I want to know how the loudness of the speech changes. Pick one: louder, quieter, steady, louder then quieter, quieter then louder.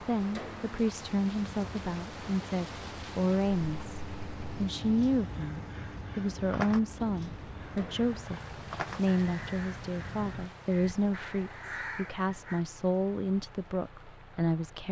steady.